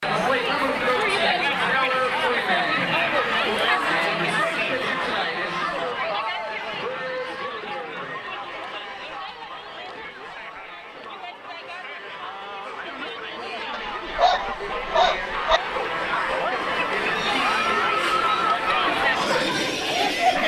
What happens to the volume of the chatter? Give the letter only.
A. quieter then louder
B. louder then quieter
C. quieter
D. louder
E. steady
A.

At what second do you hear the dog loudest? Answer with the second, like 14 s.
15 s.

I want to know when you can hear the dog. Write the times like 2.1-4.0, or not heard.
13.7-15.6.